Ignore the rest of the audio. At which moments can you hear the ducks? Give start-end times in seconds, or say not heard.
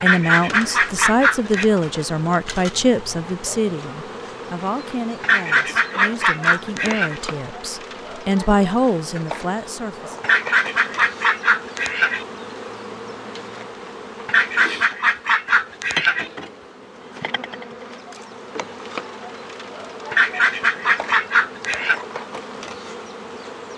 0.0-1.6, 5.2-7.2, 10.2-12.2, 14.2-16.3, 20.1-22.0.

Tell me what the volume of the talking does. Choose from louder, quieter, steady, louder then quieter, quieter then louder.
quieter then louder.